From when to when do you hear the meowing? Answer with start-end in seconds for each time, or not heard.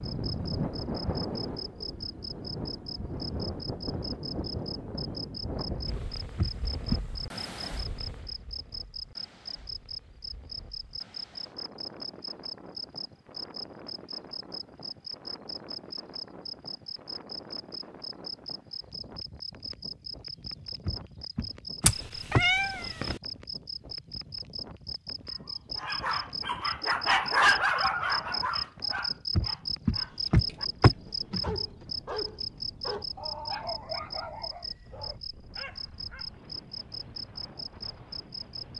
21.9-23.2.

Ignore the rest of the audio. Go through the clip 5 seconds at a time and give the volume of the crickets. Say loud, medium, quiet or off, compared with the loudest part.
medium, medium, medium, medium, medium, loud, loud, medium.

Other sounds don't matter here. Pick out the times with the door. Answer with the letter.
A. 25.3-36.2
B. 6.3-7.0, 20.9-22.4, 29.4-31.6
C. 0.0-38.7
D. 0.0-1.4
B.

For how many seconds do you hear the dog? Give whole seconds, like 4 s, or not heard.
11 s.